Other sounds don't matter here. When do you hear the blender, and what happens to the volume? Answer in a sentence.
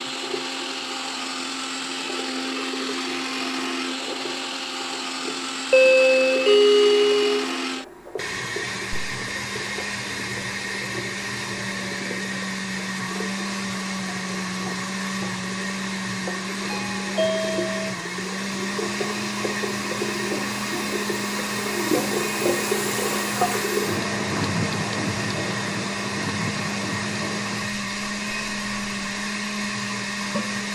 You can hear the blender from 0.0 to 30.7 s, at a steady volume.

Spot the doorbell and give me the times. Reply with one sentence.
You can hear the doorbell from 5.7 to 7.5 s and from 16.7 to 17.7 s.